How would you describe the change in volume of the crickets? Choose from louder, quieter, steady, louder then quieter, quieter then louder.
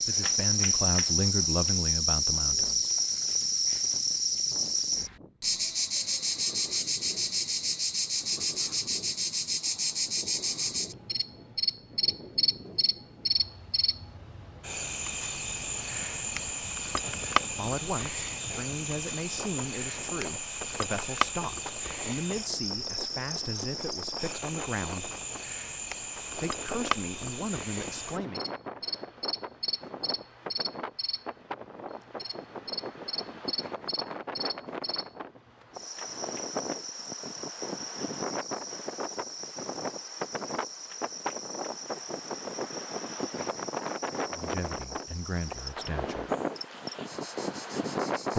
quieter.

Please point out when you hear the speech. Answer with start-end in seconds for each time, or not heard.
0.1-2.9, 17.5-25.1, 26.4-28.4, 44.3-46.3.